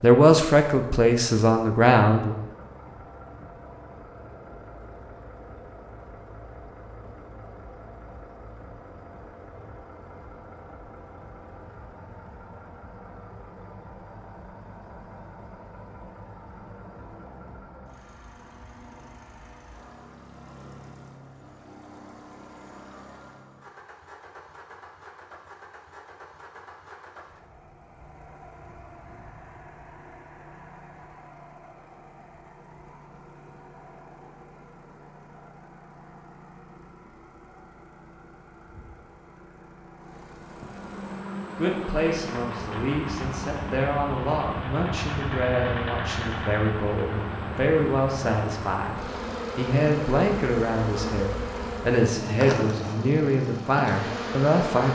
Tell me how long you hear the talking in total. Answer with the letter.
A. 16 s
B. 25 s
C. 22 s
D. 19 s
A.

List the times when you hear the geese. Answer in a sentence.
The geese can't be heard in this clip.